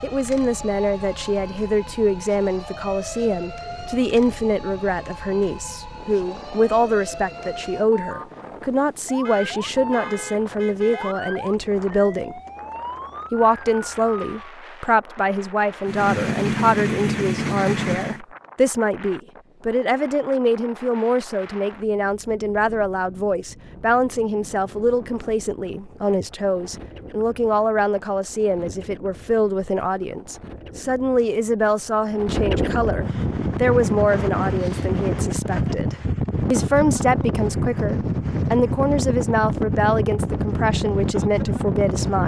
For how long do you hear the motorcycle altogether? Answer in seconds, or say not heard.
2 s.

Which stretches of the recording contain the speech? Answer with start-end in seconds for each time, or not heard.
0.0-12.4, 13.3-42.2.